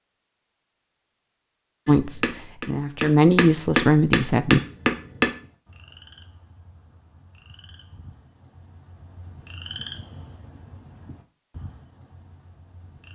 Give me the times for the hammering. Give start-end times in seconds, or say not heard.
1.9-5.3.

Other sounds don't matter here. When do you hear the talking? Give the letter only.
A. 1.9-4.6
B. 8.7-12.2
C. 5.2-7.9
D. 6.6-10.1
A.